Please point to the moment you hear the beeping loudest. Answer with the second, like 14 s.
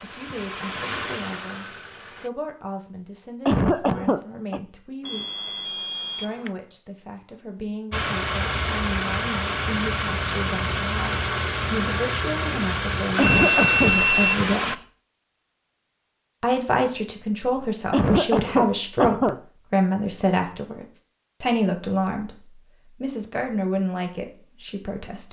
14 s.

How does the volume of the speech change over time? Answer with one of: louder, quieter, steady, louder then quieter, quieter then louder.
louder.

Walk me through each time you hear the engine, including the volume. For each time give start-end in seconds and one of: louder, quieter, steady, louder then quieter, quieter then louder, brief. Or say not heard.
0.0-2.3 brief
7.9-14.8 steady.